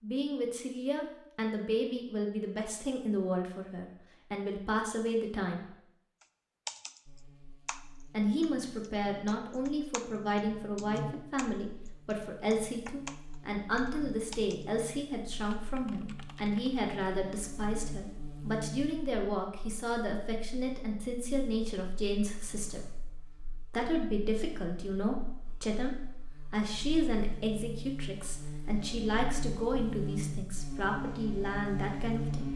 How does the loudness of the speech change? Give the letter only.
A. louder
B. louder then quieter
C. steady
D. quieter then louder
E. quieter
C.